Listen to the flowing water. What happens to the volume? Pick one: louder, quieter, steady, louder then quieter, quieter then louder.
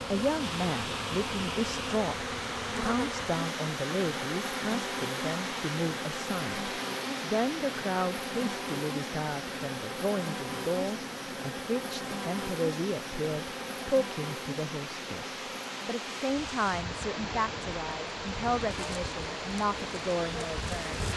quieter then louder.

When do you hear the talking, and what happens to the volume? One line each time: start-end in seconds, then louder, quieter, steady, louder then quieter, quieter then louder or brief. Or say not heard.
0.1-21.1 steady.